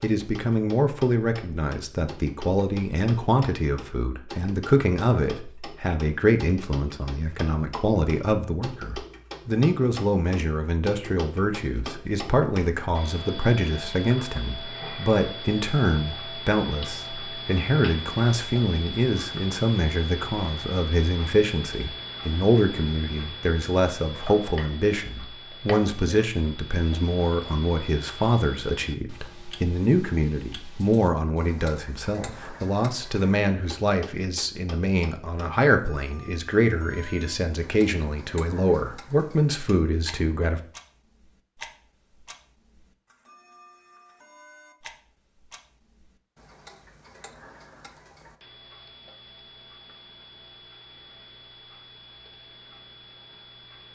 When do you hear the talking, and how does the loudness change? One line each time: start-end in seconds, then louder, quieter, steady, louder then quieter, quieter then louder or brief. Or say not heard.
0.0-40.6 steady.